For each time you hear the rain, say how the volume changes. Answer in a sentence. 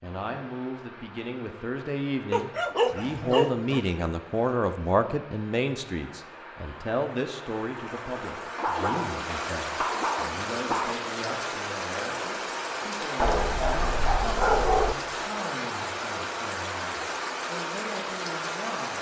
The rain can be heard from 0.0 to 18.9 s, getting louder.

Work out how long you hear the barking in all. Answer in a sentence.
You can hear the barking for 6 seconds altogether.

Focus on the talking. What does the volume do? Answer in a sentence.
The volume of the talking goes down.